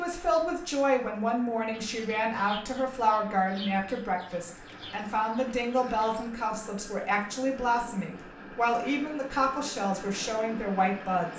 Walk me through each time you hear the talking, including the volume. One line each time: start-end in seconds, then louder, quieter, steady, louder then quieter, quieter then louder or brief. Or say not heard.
0.0-11.3 steady.